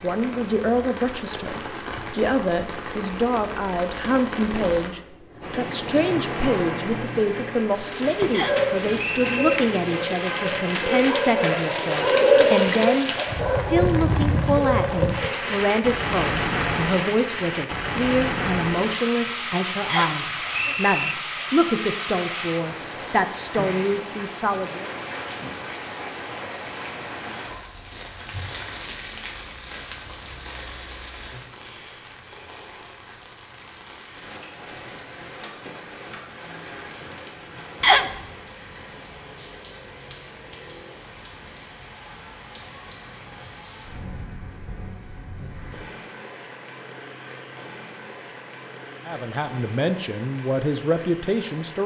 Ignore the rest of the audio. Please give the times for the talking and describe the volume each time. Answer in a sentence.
The talking can be heard from 0.0 to 24.9 s, at a steady volume; and briefly from 49.0 to 51.8 s.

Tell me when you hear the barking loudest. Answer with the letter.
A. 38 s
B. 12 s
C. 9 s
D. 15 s
B.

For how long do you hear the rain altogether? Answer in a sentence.
You can hear the rain for 52 seconds altogether.